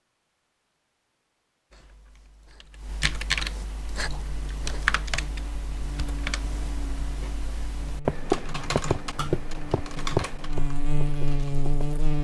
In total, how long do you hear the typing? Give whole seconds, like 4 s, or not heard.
10 s.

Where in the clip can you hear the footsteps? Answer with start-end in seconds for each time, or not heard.
not heard.